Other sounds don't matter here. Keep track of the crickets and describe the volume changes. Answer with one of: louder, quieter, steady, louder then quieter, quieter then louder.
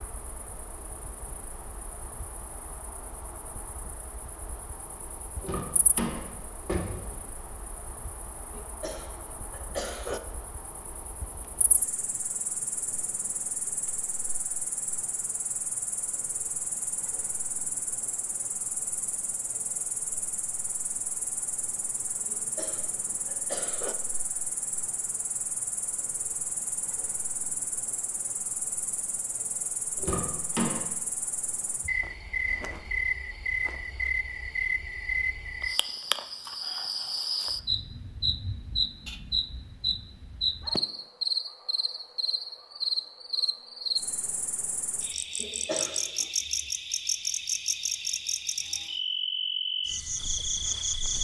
louder.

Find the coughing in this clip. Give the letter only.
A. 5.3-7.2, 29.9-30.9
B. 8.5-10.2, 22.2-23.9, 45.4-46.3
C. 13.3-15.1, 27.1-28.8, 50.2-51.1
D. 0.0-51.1
B.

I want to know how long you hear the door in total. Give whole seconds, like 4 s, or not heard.
3 s.